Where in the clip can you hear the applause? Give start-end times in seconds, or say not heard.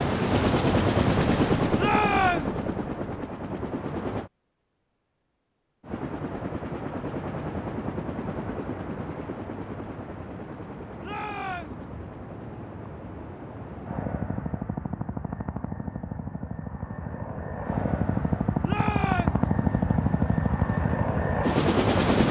not heard.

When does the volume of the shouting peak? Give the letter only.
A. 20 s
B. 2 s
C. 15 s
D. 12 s
B.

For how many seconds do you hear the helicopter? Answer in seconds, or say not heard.
21 s.